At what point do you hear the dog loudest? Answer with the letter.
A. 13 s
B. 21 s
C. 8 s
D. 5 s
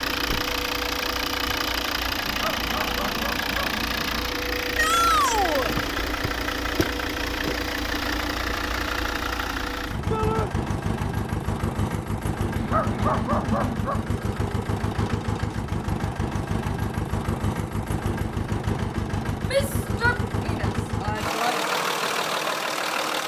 A.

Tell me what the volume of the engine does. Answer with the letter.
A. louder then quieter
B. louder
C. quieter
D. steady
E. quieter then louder
D.